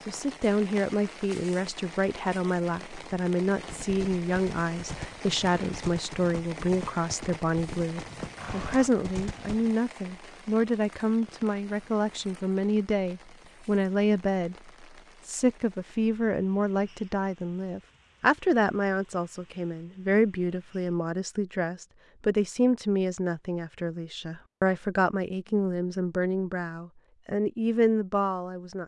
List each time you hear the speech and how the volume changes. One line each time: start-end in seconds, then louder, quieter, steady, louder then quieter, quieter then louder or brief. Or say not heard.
0.1-28.8 steady.